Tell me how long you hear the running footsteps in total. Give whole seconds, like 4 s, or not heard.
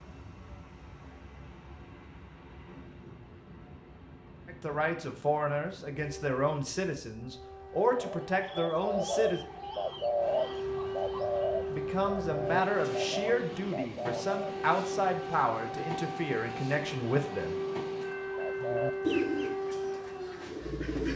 not heard.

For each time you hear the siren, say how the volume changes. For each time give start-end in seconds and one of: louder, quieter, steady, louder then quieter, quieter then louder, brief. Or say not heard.
5.8-21.1 louder.